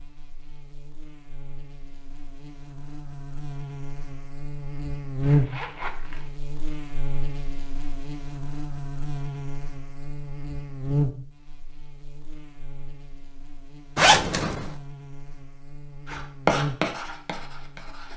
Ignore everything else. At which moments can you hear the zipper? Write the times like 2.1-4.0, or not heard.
5.2-6.3, 13.9-14.8.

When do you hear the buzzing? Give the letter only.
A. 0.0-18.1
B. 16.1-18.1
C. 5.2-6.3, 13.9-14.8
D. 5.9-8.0
A.